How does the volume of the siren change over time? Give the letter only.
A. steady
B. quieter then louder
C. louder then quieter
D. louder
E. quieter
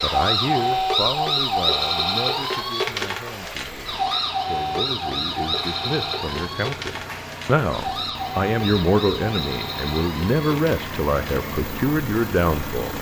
E.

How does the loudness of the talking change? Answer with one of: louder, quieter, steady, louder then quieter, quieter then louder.
quieter then louder.